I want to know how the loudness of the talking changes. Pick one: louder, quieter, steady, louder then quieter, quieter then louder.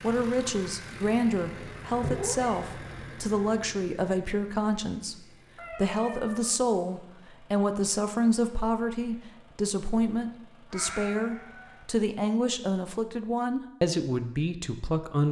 steady.